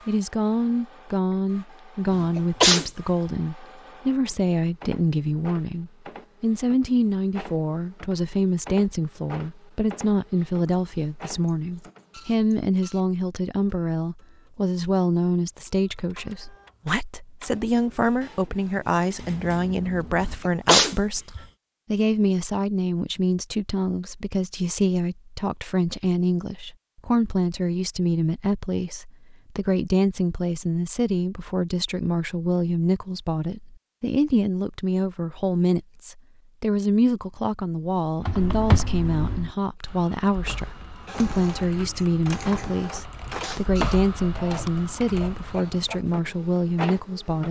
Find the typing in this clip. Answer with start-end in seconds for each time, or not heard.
38.2-46.0.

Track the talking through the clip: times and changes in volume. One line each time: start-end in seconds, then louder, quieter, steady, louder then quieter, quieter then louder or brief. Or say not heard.
0.1-47.4 steady.